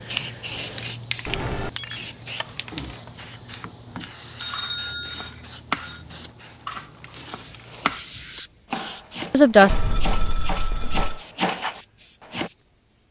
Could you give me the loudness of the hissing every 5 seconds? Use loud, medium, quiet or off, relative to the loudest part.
loud, medium, quiet.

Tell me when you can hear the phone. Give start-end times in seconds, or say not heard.
1.2-2.0, 4.3-6.0, 9.7-11.2.